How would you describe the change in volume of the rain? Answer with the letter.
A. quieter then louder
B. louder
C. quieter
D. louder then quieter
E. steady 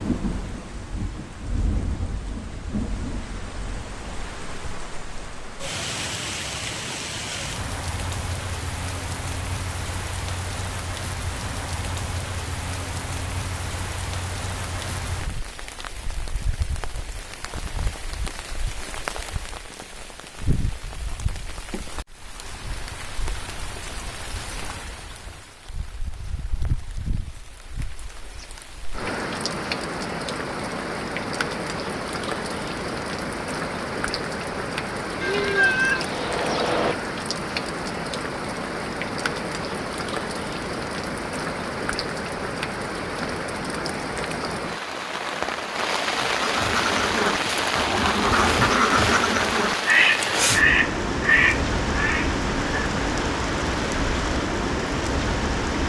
B.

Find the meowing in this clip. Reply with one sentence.
You can hear the meowing from 35.2 to 37.0 s.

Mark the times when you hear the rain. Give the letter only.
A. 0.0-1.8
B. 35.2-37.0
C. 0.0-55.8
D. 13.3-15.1
C.